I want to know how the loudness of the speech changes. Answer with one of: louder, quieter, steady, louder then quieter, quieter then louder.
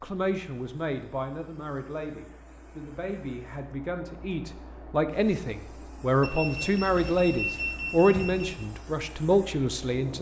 louder.